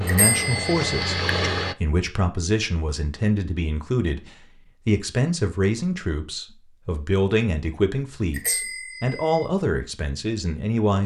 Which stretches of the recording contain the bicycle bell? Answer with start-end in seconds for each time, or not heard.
0.1-1.1, 8.3-9.4.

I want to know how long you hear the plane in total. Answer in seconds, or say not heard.
2 s.